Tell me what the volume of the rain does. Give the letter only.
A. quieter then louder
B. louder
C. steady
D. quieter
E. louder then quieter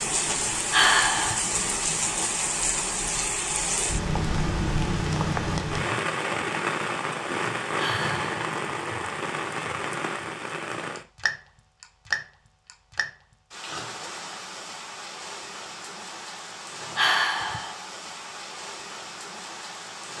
D.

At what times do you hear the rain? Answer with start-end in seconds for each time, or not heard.
0.0-20.1.